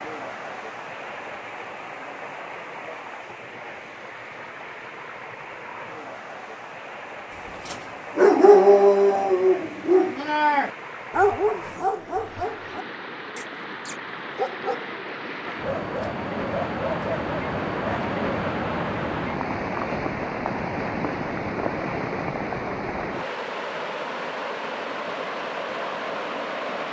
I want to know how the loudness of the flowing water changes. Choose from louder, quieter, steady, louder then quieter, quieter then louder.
louder.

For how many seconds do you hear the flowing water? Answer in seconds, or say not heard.
27 s.